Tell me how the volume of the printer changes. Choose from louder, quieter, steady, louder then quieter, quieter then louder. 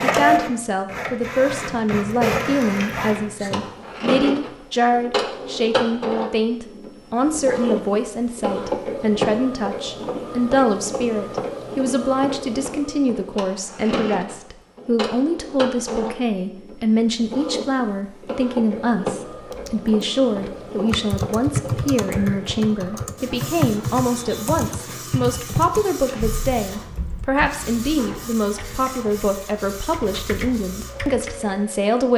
quieter.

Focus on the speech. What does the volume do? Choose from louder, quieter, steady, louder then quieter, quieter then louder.
steady.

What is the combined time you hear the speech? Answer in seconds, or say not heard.
32 s.